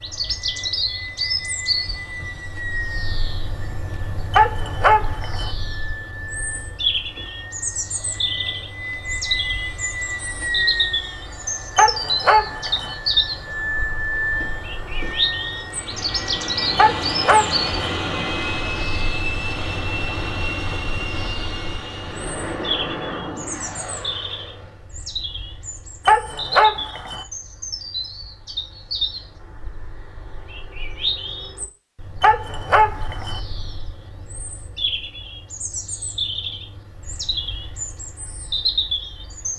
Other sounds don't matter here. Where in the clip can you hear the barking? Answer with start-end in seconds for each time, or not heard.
4.3-5.5, 11.8-12.9, 16.8-17.9, 26.1-27.2, 32.2-33.4.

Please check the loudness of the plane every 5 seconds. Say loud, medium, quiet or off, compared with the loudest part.
medium, medium, loud, loud, loud, off, off, off.